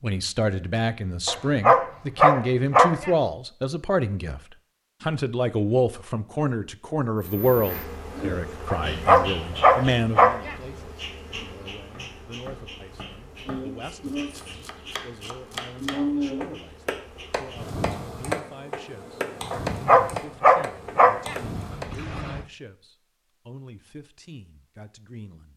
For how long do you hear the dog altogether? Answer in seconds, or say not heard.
7 s.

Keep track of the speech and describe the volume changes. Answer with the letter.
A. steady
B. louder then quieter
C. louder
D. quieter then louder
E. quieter
E.